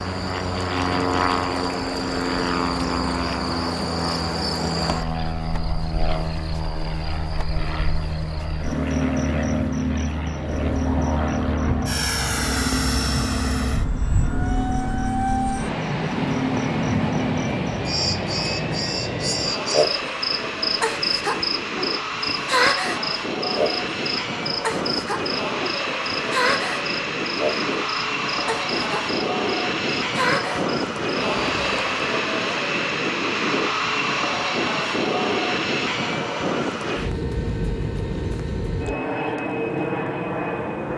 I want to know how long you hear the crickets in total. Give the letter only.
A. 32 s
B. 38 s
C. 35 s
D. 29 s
A.